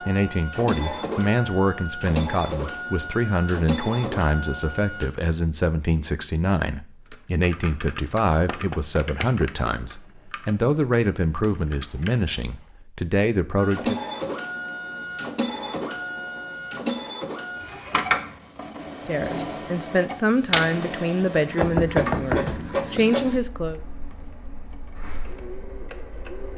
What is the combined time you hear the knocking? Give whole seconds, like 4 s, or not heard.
3 s.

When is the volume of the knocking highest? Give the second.
22 s.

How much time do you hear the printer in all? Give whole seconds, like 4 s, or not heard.
18 s.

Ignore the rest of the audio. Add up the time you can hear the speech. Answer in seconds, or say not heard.
19 s.